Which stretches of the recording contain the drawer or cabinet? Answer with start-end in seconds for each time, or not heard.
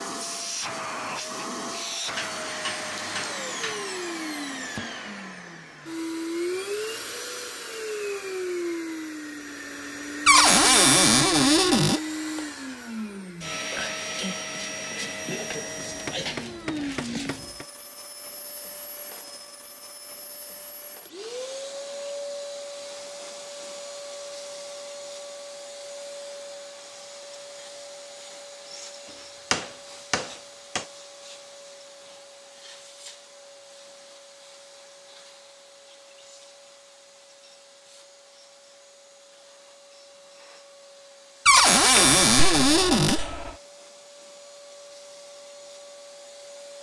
10.2-12.0, 41.5-43.2.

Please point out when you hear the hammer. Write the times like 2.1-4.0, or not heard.
2.1-3.9, 15.8-17.6, 29.5-30.9, 42.0-43.5.